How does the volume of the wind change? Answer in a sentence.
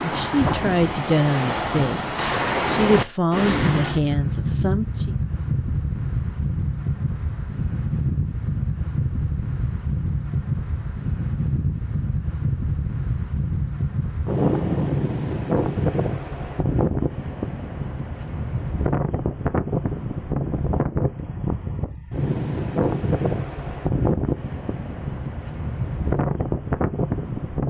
The loudness of the wind stays about the same.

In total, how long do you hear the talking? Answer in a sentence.
The talking can be heard for 5 seconds in total.